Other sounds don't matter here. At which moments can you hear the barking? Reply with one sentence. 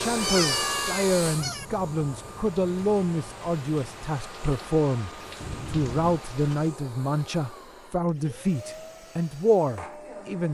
You can't hear the barking here.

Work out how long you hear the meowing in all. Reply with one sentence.
You can hear the meowing for 2 seconds altogether.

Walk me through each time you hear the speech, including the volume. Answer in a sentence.
The speech can be heard from 0.0 to 10.4 s, at a steady volume.